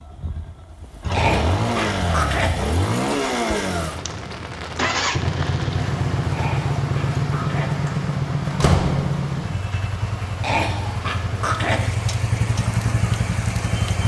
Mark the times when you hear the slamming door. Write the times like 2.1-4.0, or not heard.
7.8-9.4.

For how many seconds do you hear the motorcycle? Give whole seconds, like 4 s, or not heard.
14 s.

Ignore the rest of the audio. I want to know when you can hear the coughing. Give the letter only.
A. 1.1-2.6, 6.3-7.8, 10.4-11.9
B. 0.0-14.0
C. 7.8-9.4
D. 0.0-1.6
A.